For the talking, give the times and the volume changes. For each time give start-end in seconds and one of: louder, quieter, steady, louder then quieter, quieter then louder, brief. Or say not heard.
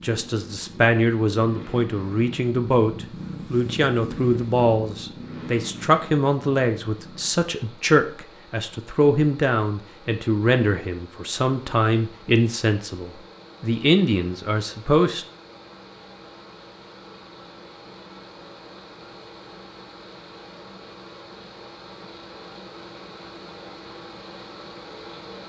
0.0-15.2 steady.